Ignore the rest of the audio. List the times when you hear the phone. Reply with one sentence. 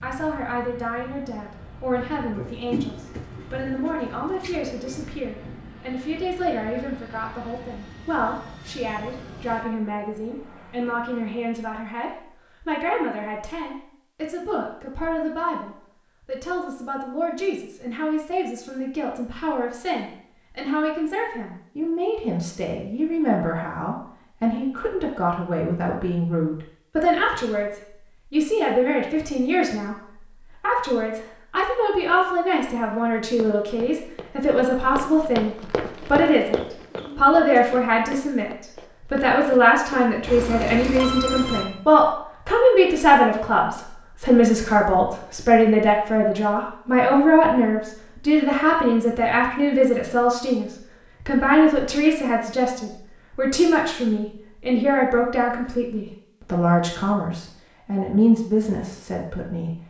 You can hear the phone from 40.2 to 41.6 s.